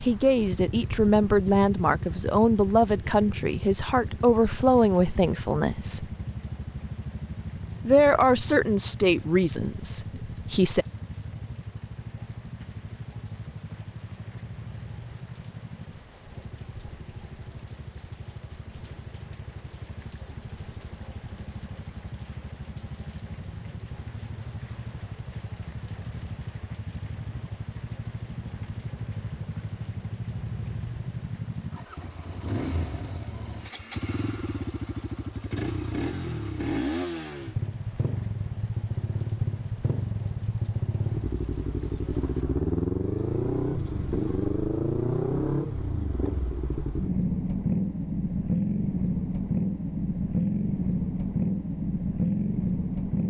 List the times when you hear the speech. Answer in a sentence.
The speech can be heard from 0.0 to 6.0 s and from 7.8 to 10.8 s.